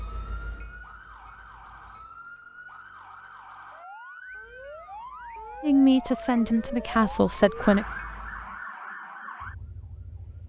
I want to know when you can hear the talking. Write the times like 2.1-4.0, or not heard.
5.6-7.8.